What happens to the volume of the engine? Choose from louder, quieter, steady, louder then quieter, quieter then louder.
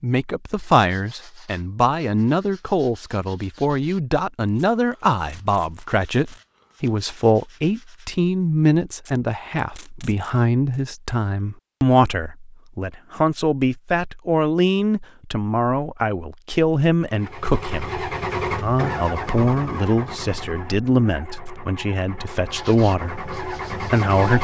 quieter then louder.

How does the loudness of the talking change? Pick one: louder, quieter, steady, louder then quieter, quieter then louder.
steady.